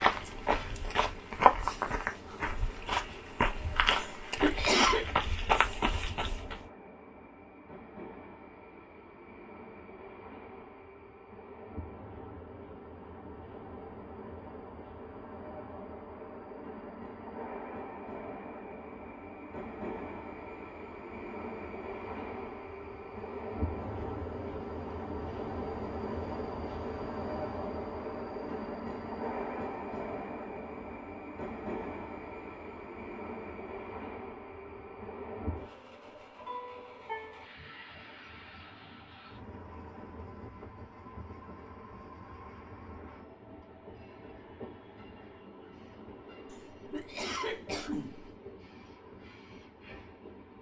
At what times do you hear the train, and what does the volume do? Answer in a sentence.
You can hear the train from 0.0 to 50.5 s, getting louder then quieter.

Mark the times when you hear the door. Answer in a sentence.
You can't hear the door here.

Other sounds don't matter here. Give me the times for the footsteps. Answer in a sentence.
You can hear the footsteps from 0.0 to 6.6 s.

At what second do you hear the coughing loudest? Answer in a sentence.
The volume of the coughing peaks at 5 seconds.